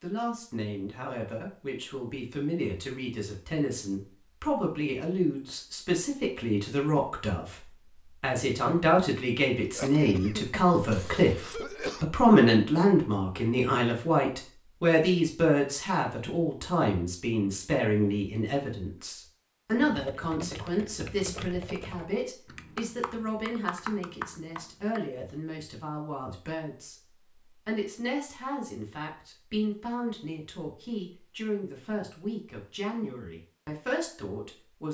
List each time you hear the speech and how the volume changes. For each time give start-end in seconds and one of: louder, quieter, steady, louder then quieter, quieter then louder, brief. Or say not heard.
0.0-34.8 louder then quieter.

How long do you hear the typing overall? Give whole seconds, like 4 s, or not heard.
5 s.